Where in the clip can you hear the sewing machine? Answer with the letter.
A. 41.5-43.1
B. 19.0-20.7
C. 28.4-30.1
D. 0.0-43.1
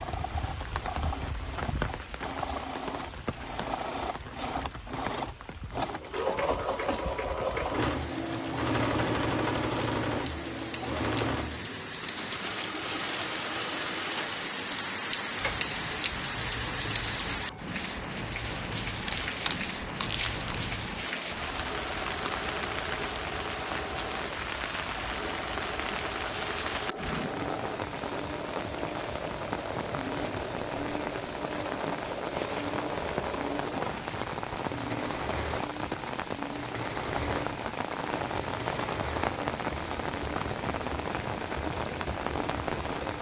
D.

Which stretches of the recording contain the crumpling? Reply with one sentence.
The crumpling can be heard from 19.0 to 20.7 s.